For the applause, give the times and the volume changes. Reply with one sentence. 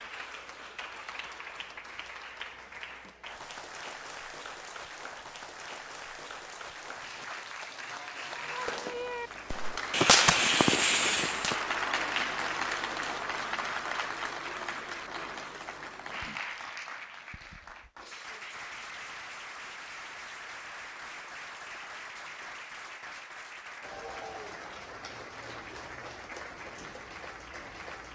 You can hear the applause from 0.0 to 28.1 s, getting louder then quieter.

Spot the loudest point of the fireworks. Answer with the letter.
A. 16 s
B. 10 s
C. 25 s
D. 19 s
B.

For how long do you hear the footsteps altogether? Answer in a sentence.
The footsteps can't be heard in this clip.